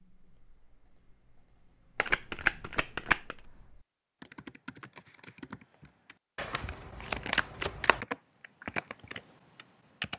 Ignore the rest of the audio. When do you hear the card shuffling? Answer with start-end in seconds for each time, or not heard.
1.9-3.4, 6.3-8.0.